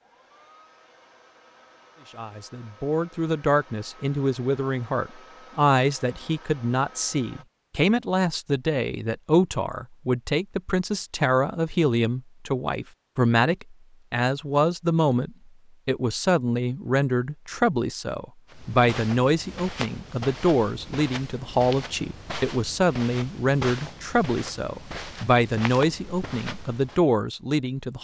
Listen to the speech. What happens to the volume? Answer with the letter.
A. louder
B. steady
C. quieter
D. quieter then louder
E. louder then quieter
B.